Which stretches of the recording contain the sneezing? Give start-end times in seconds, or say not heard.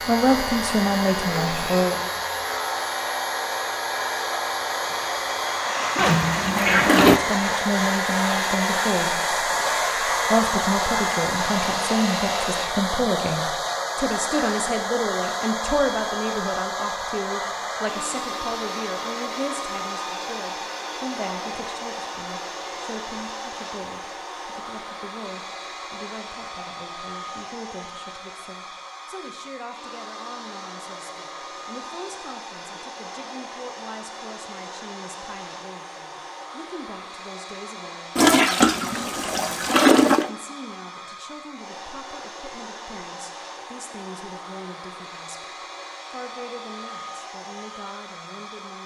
5.7-6.2.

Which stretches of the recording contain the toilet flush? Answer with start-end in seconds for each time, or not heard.
6.0-7.2, 38.1-40.3.